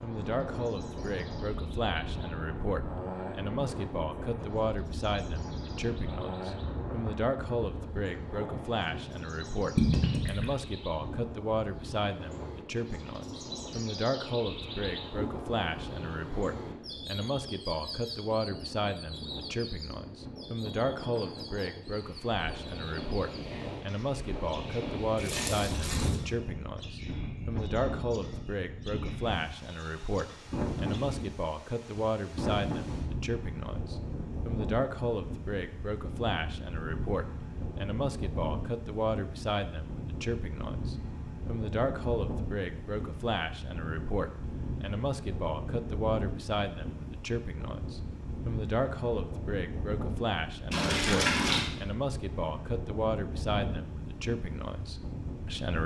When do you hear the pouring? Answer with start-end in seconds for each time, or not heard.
9.8-10.6, 25.1-26.2, 50.7-51.7.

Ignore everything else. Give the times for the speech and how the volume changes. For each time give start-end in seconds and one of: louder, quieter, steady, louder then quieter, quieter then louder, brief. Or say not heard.
0.0-55.8 steady.